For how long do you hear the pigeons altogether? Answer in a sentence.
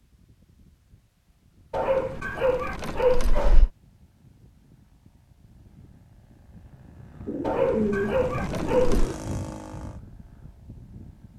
You can hear the pigeons for 2 seconds altogether.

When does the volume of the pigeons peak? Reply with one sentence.
The volume of the pigeons peaks at 8 seconds.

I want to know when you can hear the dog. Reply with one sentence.
The dog can be heard from 1.7 to 3.7 s and from 7.4 to 9.1 s.